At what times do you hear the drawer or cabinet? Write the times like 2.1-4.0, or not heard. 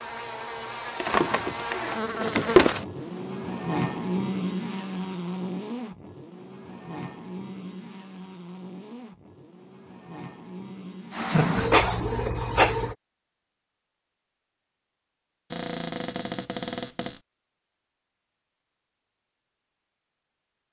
0.9-2.8, 15.5-17.2.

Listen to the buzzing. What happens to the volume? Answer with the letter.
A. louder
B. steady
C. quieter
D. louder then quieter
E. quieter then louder
C.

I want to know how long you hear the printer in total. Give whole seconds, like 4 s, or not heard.
2 s.